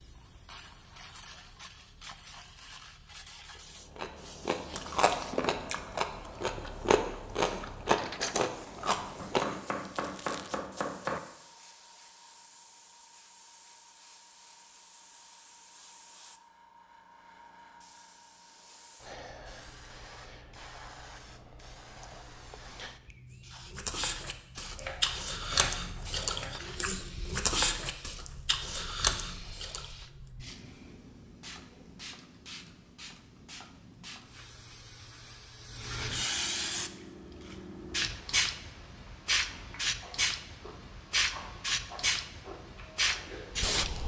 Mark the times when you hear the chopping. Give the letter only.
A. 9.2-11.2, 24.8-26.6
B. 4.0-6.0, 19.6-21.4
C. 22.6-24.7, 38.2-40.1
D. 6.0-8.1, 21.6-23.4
A.